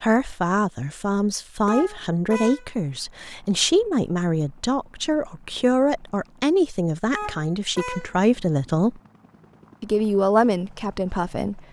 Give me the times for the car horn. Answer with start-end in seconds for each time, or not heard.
1.6-2.7, 7.1-8.2.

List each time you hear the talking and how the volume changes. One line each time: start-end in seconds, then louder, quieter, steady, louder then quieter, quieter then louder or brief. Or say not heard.
0.0-9.0 steady
9.8-11.6 brief.